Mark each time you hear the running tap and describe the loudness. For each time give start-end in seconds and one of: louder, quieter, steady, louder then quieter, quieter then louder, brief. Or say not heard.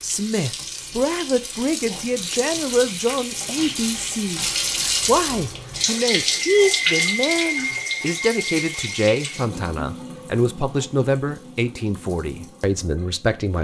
0.0-13.5 louder then quieter.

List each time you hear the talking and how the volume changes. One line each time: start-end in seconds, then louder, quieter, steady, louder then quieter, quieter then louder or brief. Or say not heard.
0.0-13.5 steady.